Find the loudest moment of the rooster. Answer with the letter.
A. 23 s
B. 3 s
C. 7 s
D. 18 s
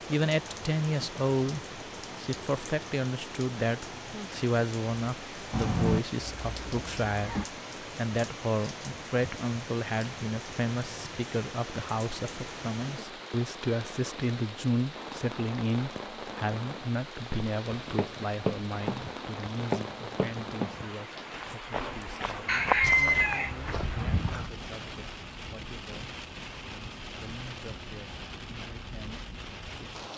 A.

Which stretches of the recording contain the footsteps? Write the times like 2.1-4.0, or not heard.
17.3-23.9.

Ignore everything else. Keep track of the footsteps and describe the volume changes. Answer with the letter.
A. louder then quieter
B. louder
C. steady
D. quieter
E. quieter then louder
E.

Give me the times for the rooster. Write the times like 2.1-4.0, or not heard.
5.5-7.5, 22.4-24.5.